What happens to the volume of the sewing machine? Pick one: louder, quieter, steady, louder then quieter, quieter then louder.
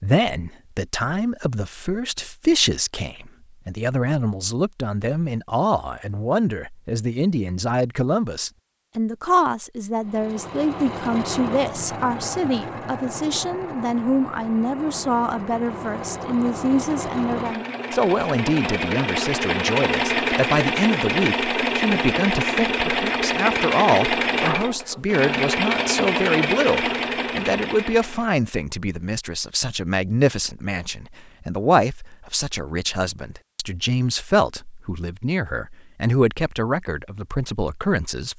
louder.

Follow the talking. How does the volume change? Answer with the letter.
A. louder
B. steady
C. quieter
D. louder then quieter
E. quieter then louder
B.